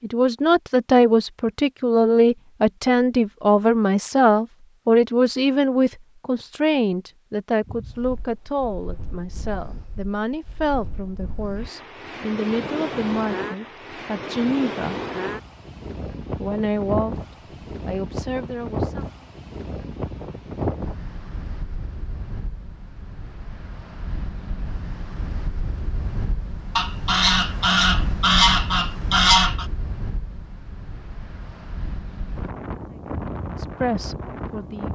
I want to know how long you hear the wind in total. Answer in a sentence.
The wind can be heard for 27 seconds in total.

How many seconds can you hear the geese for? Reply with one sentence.
You can hear the geese for 3 seconds altogether.